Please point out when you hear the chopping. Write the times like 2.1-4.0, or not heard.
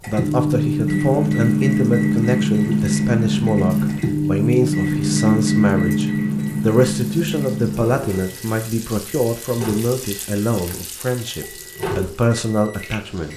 not heard.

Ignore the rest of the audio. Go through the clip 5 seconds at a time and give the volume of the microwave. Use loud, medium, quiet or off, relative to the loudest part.
loud, loud, quiet.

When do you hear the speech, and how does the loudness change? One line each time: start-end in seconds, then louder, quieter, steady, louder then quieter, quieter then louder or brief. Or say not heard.
0.1-13.3 steady.